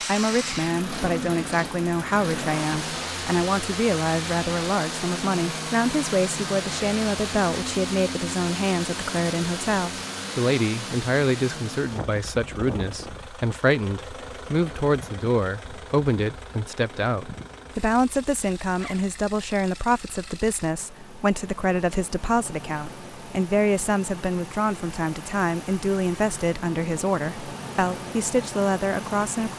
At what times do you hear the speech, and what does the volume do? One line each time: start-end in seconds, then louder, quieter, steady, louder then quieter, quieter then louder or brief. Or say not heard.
0.1-29.5 steady.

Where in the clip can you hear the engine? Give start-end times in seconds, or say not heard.
0.0-29.5.